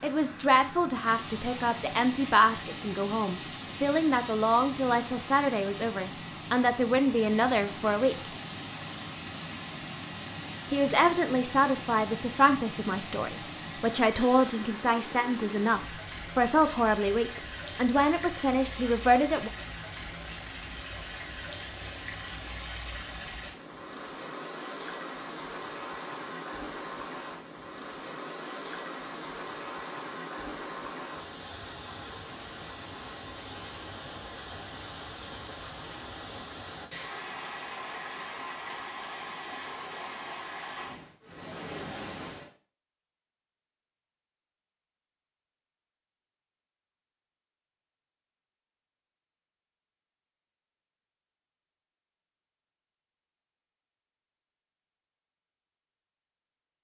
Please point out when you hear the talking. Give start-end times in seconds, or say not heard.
0.0-8.3, 10.7-19.5.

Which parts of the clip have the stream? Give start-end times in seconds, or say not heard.
0.0-42.5.